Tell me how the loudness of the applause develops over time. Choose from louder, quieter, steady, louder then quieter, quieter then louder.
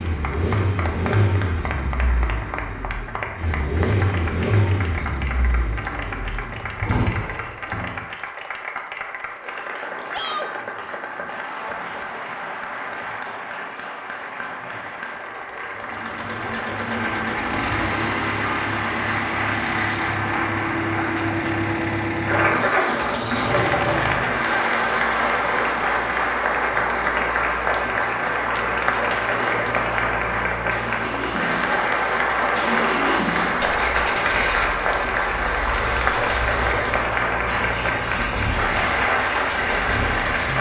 louder.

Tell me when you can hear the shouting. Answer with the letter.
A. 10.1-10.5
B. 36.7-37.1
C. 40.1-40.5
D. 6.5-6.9
A.